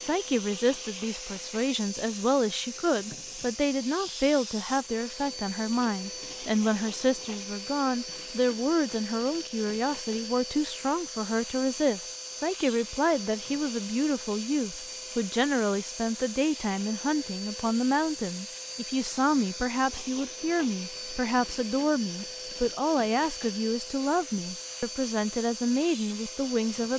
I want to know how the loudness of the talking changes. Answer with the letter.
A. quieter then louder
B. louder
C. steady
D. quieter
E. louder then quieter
C.